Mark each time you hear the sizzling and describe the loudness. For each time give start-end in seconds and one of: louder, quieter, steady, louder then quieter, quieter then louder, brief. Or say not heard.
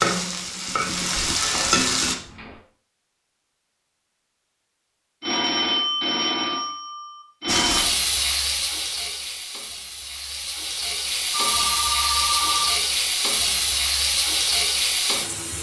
0.0-2.1 brief
7.5-15.5 quieter then louder.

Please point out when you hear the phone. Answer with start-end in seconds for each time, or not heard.
1.4-2.6, 5.2-7.9, 11.3-12.8.